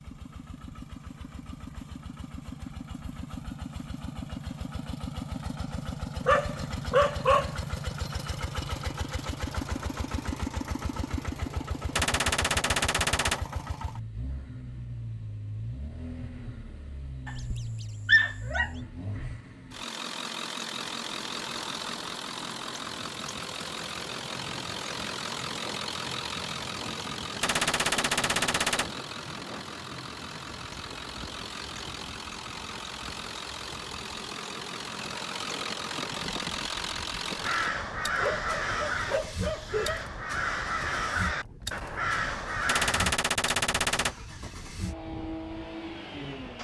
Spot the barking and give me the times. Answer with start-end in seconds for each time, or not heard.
6.2-7.6, 17.2-18.7, 38.1-40.0.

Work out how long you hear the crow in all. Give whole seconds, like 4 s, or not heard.
6 s.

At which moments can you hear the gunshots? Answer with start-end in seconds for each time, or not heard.
11.9-13.4, 27.4-28.9, 42.6-44.1.